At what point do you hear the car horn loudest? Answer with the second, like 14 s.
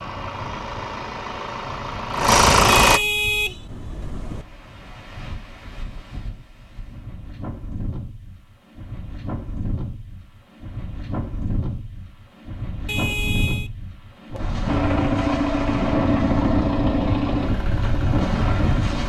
3 s.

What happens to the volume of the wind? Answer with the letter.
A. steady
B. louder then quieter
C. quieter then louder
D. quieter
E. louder
E.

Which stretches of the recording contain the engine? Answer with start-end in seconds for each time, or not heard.
0.0-3.0, 14.7-19.0.